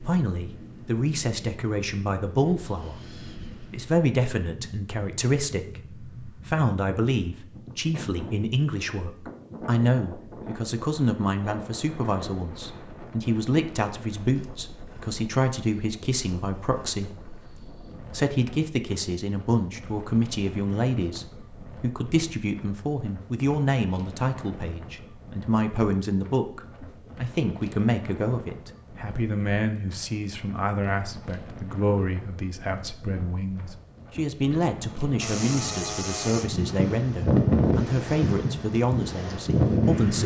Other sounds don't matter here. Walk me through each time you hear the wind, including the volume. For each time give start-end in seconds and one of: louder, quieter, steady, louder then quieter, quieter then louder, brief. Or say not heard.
0.0-40.2 louder.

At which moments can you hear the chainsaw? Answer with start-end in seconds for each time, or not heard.
35.1-37.0.